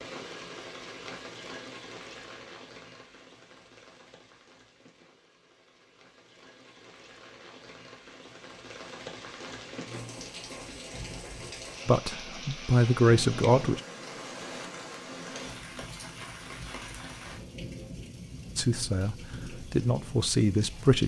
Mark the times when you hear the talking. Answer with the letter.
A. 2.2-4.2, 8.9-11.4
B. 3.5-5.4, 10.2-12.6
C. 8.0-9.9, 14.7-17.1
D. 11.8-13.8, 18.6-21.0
D.